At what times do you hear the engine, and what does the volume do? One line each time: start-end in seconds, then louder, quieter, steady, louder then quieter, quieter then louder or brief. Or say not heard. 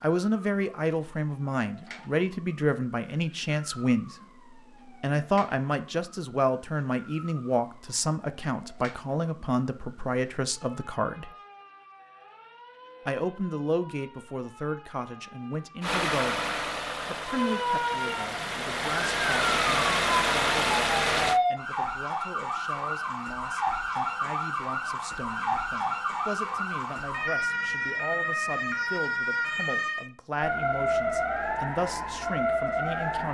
15.8-21.4 quieter then louder.